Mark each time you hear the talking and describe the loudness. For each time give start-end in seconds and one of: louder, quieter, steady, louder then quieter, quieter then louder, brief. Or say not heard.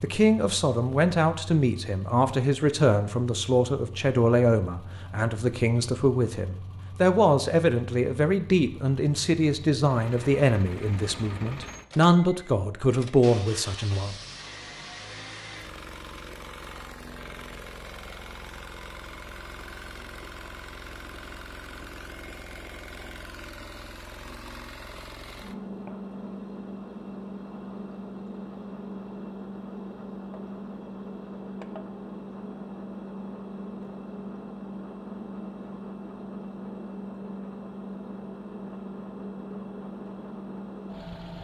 0.0-14.2 steady.